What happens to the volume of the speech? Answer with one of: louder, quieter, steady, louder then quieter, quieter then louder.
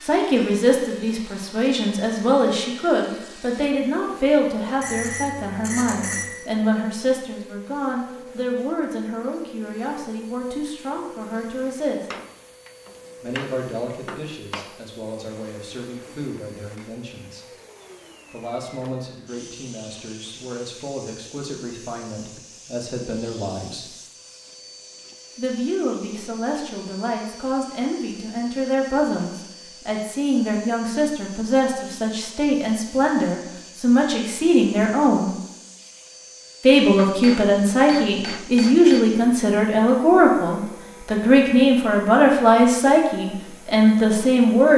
quieter then louder.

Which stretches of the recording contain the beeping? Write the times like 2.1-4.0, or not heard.
4.8-6.2.